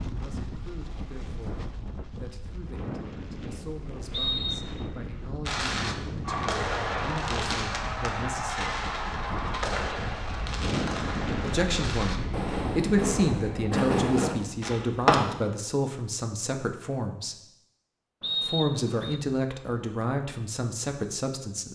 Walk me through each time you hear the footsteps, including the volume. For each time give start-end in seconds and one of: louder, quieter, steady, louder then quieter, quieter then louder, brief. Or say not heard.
not heard.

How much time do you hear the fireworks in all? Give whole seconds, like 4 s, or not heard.
10 s.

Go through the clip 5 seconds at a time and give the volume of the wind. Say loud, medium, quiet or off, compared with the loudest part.
medium, medium, loud, off, off.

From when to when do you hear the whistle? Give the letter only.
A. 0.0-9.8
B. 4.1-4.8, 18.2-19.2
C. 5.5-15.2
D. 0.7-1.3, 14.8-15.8
B.